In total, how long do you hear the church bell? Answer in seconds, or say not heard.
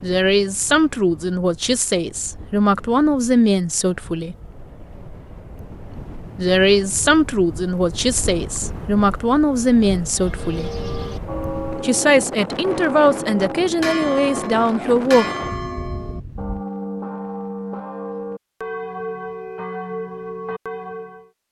11 s.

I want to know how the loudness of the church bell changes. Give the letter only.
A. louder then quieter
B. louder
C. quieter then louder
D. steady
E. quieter
D.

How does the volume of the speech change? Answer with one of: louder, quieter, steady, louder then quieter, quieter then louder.
steady.